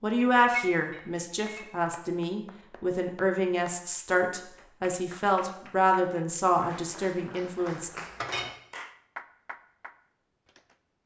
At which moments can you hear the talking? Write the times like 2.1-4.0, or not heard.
0.0-8.0.